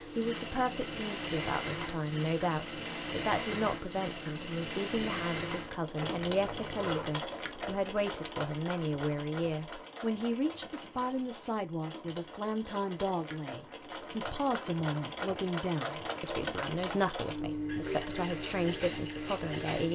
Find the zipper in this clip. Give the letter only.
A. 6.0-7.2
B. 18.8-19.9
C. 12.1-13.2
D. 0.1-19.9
A.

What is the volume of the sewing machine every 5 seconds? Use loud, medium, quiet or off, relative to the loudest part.
loud, loud, medium, loud.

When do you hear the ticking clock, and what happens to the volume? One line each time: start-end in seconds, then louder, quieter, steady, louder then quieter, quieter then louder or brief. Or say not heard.
not heard.